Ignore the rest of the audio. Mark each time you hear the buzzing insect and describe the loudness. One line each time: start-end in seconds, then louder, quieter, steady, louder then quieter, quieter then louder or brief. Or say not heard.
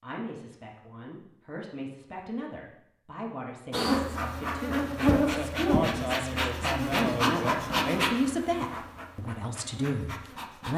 3.7-10.7 quieter.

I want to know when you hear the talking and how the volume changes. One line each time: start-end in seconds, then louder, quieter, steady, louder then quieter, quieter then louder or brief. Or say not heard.
0.0-10.7 louder.